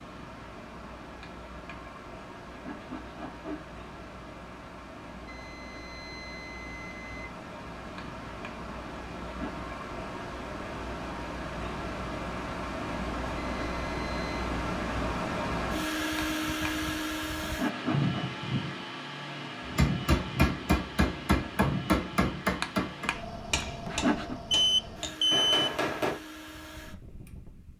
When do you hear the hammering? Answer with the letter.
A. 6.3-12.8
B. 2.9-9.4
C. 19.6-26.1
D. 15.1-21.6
C.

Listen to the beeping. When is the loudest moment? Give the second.
25 s.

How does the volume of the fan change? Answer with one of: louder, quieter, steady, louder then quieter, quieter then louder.
louder then quieter.